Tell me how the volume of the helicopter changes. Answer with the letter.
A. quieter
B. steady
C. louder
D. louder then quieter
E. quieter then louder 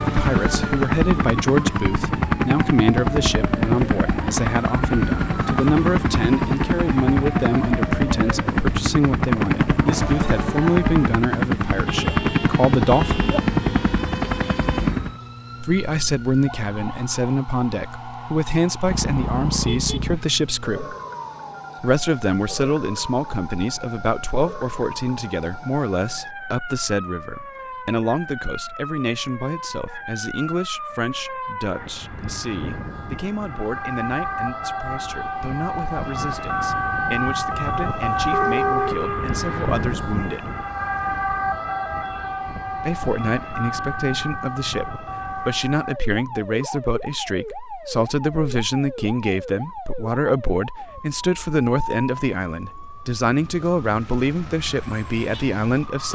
B.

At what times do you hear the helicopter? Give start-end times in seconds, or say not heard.
0.0-15.2.